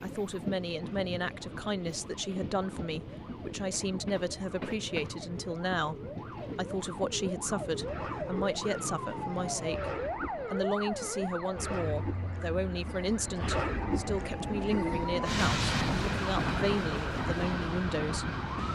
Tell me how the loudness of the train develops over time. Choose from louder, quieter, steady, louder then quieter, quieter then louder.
louder.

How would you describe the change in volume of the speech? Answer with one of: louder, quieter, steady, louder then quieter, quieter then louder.
steady.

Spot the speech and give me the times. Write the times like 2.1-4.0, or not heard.
0.0-6.0, 6.5-9.9, 10.5-18.4.